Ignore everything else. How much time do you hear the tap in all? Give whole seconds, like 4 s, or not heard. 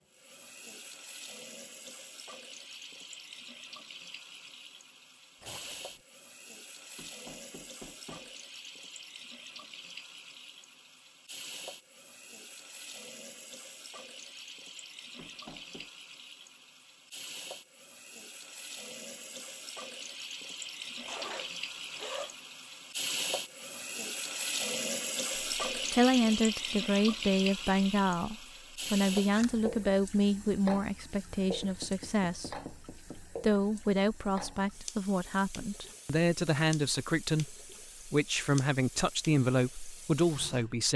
41 s.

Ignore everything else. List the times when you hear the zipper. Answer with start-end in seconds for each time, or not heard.
5.4-6.0, 21.0-22.4, 28.9-29.6.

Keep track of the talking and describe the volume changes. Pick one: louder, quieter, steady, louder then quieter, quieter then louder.
steady.